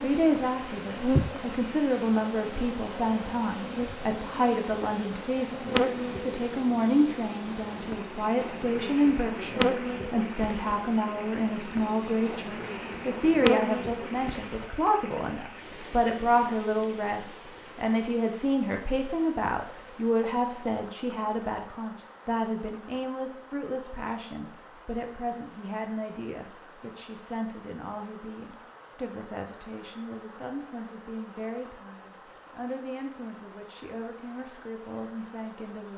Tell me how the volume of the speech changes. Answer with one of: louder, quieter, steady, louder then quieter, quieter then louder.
quieter.